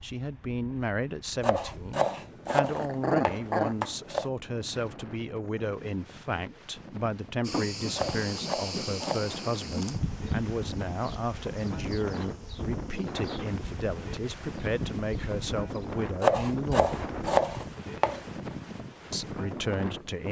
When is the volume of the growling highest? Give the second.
3 s.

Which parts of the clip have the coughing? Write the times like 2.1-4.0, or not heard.
not heard.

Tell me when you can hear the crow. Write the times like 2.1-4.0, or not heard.
not heard.